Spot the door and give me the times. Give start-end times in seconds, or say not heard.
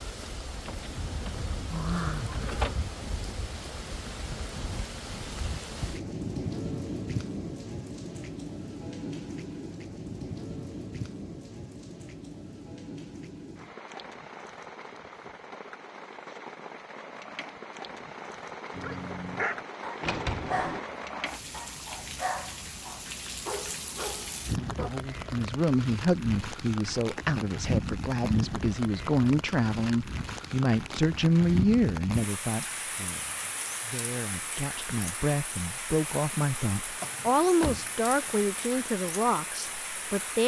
0.7-2.8, 20.0-20.9, 37.0-38.4.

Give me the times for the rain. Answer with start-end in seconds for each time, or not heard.
0.0-40.4.